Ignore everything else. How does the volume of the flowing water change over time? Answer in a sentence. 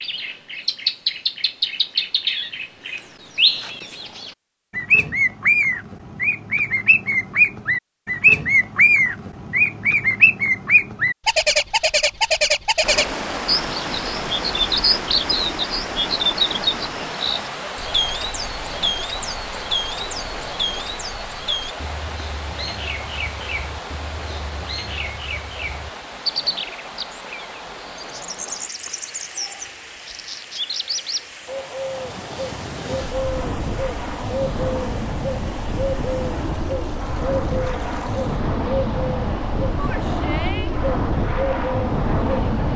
The volume of the flowing water goes down.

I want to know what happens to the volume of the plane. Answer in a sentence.
The volume of the plane goes up.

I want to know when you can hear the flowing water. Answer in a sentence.
You can hear the flowing water from 12.8 to 42.7 s.